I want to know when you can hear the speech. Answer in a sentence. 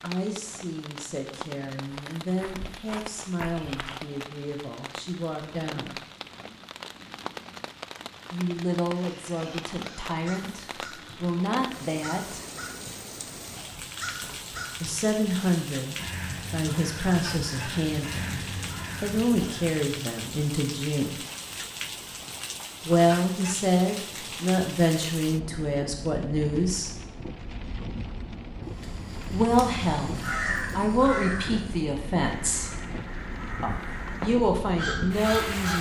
You can hear the speech from 0.0 to 6.0 s, from 8.3 to 12.4 s, from 14.8 to 21.2 s, from 22.9 to 26.9 s, from 29.3 to 32.7 s and from 33.6 to 35.7 s.